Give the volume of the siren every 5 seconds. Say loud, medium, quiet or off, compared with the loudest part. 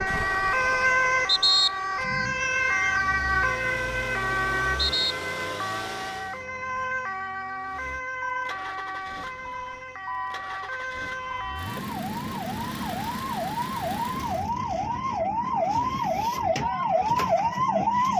loud, medium, medium, loud.